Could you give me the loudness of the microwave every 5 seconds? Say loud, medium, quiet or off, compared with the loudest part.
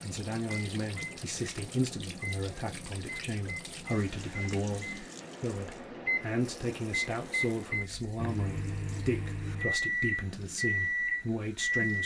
quiet, medium, loud.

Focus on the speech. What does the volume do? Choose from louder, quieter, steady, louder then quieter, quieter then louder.
steady.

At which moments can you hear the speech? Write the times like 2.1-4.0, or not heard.
0.0-12.0.